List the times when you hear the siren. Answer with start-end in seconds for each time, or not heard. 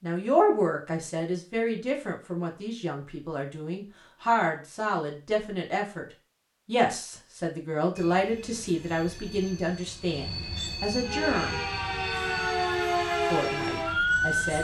11.0-14.4.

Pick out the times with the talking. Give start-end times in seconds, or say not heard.
0.0-6.0, 6.7-11.6, 13.3-14.5.